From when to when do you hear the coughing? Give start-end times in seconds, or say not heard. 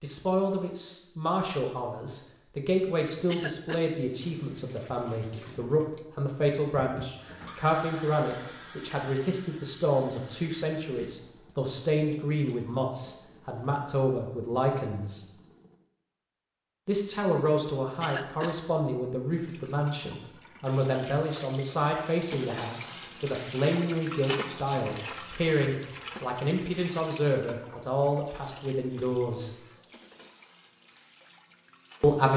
3.2-3.9, 18.0-18.6.